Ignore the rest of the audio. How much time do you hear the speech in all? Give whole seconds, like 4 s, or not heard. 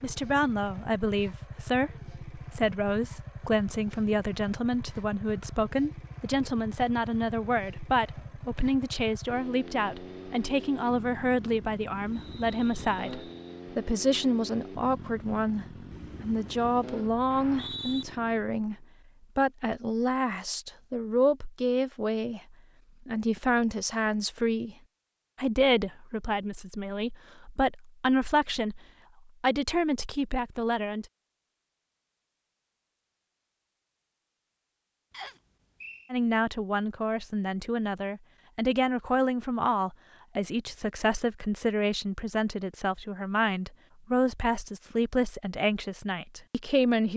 41 s.